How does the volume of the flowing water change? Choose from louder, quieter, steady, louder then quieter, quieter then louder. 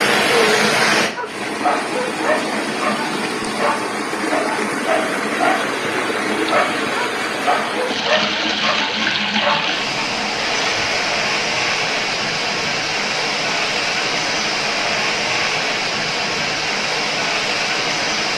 steady.